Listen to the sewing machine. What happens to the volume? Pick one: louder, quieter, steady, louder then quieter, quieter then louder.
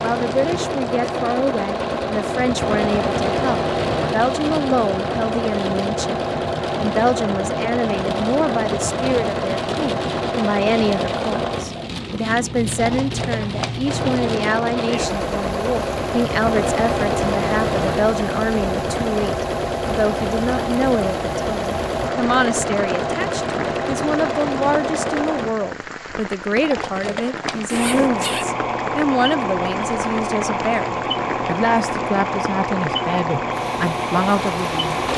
steady.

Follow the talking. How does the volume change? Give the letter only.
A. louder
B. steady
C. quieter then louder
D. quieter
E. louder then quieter
B.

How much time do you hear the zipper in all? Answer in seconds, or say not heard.
2 s.